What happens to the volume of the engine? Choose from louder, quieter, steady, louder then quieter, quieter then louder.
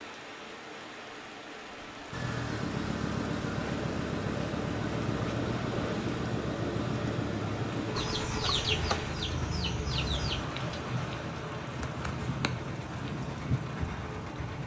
quieter.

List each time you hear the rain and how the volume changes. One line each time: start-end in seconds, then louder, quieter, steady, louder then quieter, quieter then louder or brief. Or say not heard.
0.0-14.6 louder.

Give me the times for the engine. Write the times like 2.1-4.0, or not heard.
2.1-14.6.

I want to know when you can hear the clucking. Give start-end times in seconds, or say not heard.
8.0-10.4.